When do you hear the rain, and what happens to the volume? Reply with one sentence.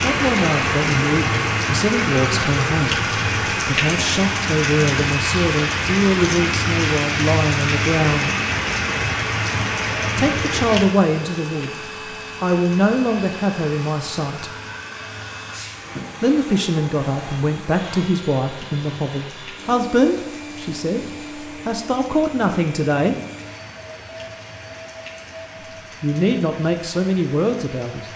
You can hear the rain from 0.0 to 28.1 s, getting quieter.